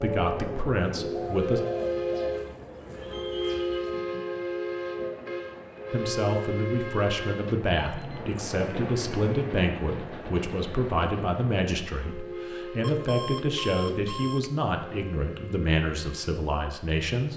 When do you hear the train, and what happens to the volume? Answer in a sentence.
You can hear the train from 0.0 to 17.3 s, getting quieter.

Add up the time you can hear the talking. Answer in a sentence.
The talking can be heard for 13 seconds in total.